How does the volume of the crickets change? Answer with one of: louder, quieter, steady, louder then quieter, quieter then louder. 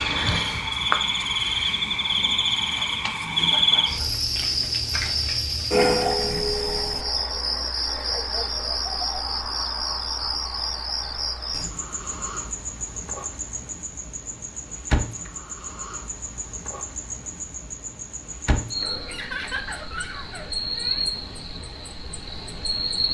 quieter.